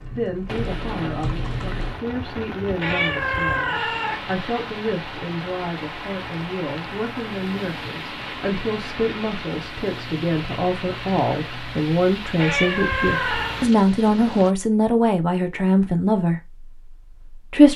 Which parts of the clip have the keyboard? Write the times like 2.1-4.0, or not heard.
0.0-1.9.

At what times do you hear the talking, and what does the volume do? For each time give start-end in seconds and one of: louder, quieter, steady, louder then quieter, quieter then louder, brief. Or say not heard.
0.1-17.7 louder.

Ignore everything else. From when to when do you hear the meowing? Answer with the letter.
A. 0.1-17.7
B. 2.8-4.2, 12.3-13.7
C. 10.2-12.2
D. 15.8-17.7
B.